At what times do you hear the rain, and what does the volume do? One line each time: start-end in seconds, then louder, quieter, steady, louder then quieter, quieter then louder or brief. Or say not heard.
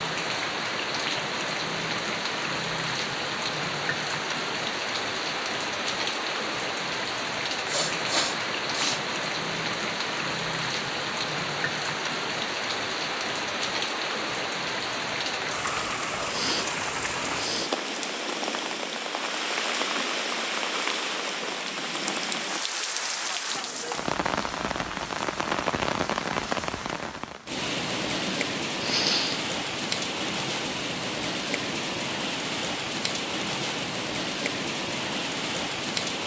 0.0-36.2 steady.